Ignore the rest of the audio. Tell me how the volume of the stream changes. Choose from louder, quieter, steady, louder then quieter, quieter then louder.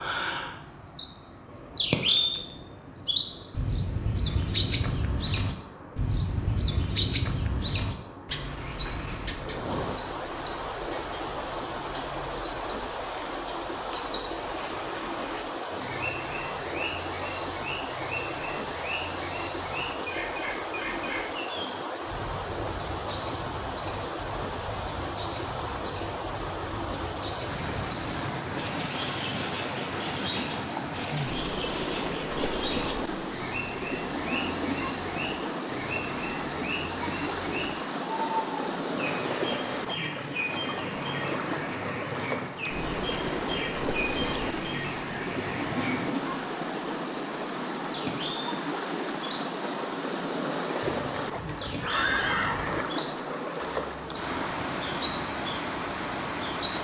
louder.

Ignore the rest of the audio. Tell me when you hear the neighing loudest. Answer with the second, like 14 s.
52 s.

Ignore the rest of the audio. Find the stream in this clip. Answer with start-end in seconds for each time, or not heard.
0.0-56.7.